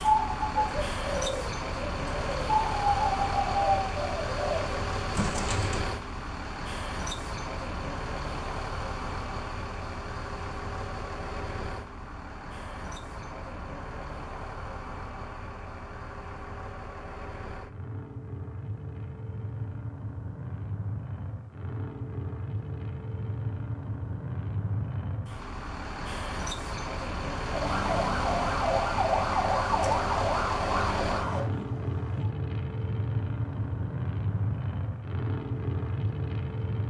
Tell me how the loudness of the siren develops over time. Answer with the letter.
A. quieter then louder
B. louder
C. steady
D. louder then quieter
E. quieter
E.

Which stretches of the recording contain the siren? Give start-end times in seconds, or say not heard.
27.4-32.4.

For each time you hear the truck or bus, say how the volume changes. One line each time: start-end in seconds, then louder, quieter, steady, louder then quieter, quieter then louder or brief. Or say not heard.
0.0-36.8 quieter then louder.